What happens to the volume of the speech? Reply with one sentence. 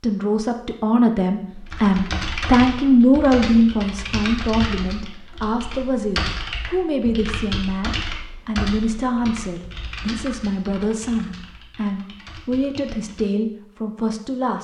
The volume of the speech goes down.